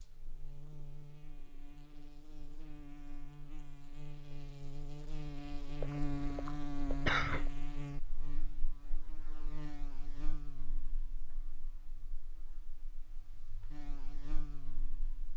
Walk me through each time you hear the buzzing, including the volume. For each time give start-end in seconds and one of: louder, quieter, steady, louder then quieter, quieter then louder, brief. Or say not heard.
0.0-15.3 louder then quieter.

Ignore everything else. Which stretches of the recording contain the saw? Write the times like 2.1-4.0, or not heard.
not heard.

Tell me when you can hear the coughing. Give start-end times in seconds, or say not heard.
5.8-7.5.